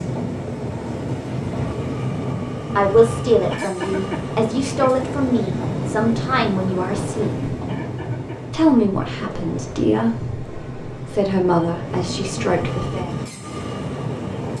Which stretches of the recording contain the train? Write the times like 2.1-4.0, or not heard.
0.0-14.5.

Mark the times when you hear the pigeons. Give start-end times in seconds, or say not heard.
not heard.